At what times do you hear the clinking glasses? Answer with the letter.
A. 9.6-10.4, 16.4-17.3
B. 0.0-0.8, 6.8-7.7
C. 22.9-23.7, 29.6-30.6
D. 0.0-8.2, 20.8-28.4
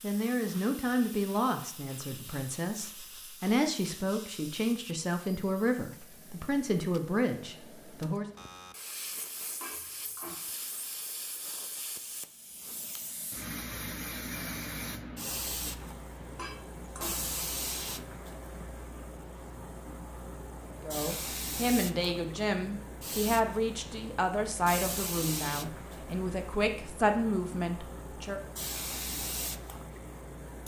A.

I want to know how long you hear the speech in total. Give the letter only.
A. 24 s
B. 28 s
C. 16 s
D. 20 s
C.